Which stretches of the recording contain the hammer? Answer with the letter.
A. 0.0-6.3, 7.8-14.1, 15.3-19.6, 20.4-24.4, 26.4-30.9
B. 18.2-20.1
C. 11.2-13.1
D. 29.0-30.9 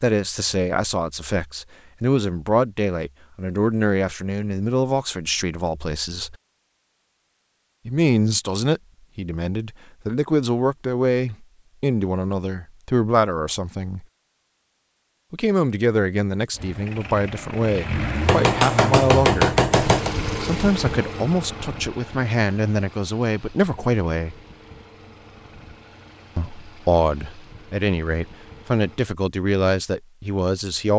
B.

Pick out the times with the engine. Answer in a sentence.
You can hear the engine from 16.6 to 29.1 s.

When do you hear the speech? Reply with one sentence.
The speech can be heard from 0.0 to 6.3 s, from 7.8 to 14.1 s, from 15.3 to 19.6 s, from 20.4 to 24.4 s and from 26.4 to 30.9 s.